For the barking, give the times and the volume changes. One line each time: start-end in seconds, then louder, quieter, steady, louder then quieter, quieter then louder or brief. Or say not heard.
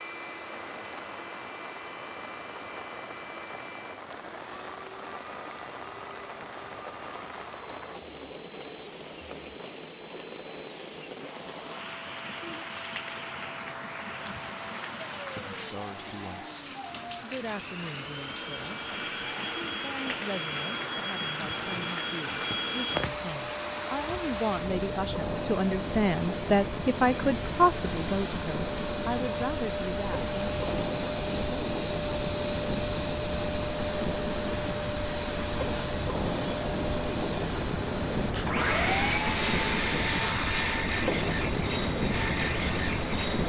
not heard.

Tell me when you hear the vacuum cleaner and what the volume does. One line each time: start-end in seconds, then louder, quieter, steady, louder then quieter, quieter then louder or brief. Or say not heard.
0.0-43.4 louder.